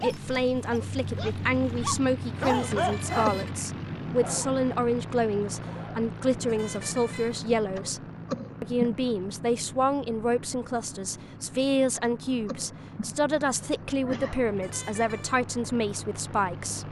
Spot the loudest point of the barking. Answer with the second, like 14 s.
3 s.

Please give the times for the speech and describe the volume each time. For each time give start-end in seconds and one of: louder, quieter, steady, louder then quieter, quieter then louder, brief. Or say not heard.
0.0-8.0 steady
8.6-16.8 steady.